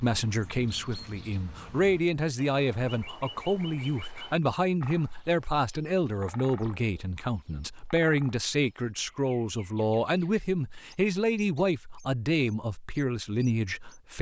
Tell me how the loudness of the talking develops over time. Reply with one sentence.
The loudness of the talking stays about the same.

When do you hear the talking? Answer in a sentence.
The talking can be heard from 0.0 to 14.1 s.